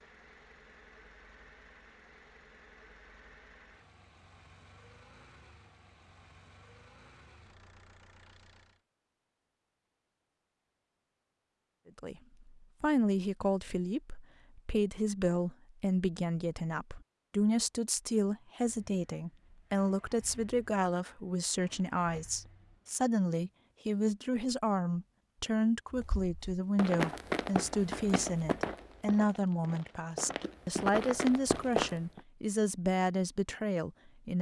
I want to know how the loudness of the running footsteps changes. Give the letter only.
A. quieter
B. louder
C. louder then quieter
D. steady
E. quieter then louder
E.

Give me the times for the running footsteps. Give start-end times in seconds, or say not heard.
25.9-32.2.